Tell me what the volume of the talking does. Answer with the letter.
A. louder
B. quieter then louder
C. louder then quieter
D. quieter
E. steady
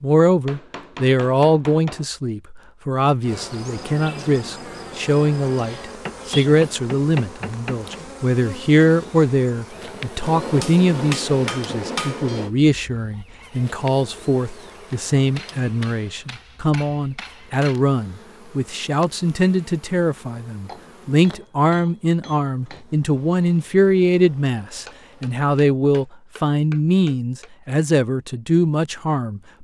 E.